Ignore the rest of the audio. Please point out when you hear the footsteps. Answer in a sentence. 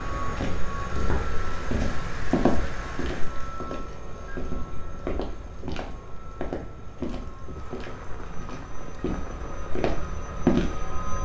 The footsteps can be heard from 0.3 to 10.8 s.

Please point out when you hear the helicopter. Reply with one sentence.
The helicopter can be heard from 0.0 to 11.2 s.